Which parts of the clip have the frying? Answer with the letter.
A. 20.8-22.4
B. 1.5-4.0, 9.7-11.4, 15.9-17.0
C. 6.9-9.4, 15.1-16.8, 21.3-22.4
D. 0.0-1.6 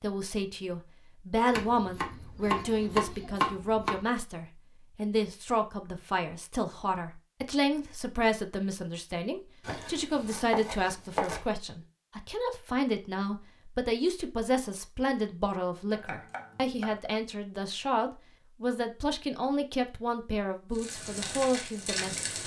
A.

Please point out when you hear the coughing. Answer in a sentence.
The coughing can't be heard in this clip.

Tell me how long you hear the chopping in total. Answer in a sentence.
You can hear the chopping for 5 seconds altogether.